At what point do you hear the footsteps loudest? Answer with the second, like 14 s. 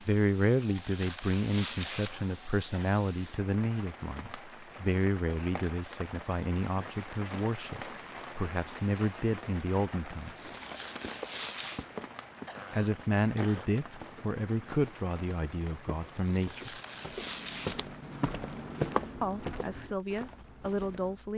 19 s.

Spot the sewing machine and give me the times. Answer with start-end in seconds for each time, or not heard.
not heard.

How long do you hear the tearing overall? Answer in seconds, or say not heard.
5 s.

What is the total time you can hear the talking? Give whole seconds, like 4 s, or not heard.
17 s.